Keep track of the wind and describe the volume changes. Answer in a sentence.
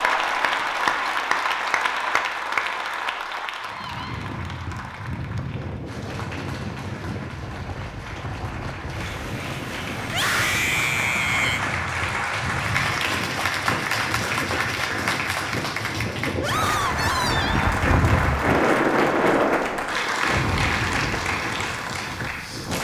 The loudness of the wind goes up.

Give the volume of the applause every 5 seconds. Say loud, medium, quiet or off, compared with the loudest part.
loud, quiet, loud, loud, loud.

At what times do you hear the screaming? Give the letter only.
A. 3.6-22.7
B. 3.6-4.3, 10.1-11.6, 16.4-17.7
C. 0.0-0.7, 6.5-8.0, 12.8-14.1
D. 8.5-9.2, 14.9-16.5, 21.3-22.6
B.